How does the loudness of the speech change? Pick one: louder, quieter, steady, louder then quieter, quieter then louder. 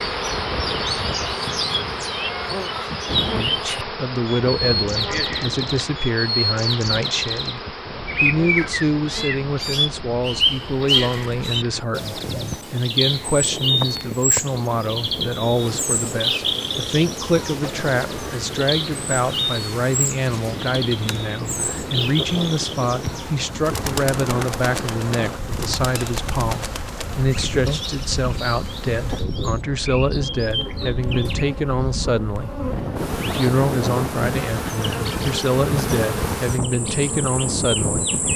steady.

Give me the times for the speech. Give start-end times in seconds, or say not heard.
3.3-38.1.